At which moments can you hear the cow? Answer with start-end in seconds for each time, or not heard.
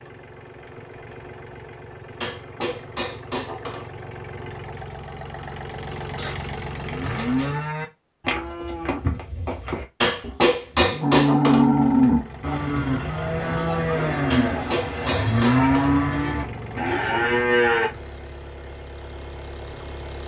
6.0-17.9.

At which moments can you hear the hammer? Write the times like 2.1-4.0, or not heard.
2.2-3.9, 10.0-11.7, 14.3-15.9.